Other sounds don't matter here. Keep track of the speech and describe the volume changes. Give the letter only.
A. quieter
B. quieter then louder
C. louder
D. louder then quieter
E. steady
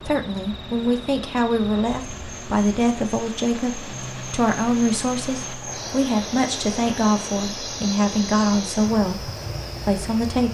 E.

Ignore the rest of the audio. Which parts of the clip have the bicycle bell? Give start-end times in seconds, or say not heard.
not heard.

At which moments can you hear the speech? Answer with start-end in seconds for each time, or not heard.
0.1-10.4.